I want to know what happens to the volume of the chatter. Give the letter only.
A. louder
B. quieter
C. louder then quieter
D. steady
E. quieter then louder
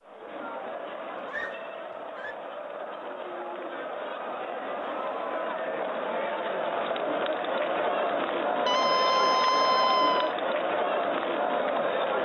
A.